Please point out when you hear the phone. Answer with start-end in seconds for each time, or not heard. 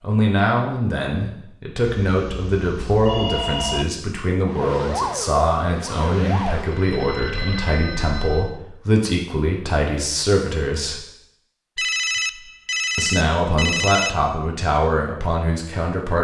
1.8-3.9, 6.7-8.6, 11.8-14.3.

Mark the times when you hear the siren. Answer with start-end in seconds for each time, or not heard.
4.5-6.8.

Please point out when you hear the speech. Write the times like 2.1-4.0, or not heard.
0.0-11.0, 12.9-16.2.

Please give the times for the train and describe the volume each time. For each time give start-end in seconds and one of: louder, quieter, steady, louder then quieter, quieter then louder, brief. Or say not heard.
not heard.